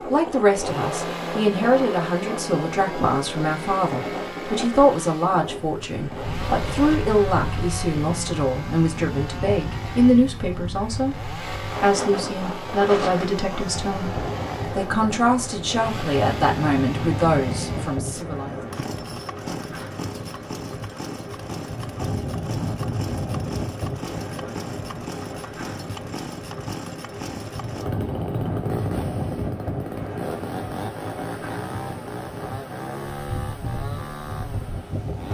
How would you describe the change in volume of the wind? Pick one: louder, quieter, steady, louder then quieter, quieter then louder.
steady.